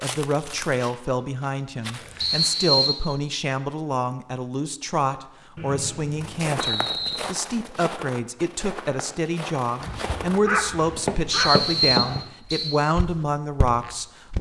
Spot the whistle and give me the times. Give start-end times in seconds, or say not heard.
2.1-3.0, 5.5-7.2, 11.3-12.8.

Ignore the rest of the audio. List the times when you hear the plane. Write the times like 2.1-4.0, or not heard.
not heard.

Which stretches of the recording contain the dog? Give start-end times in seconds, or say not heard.
9.8-12.2.